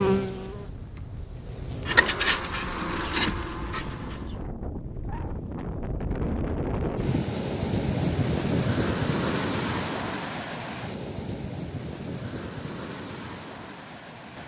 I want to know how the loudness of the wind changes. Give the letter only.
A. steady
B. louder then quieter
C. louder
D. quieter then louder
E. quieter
B.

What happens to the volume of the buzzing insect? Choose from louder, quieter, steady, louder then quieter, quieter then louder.
louder then quieter.